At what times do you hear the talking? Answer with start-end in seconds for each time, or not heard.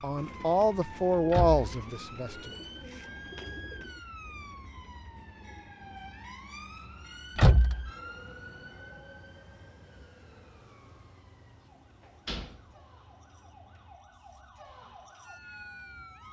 0.0-2.5.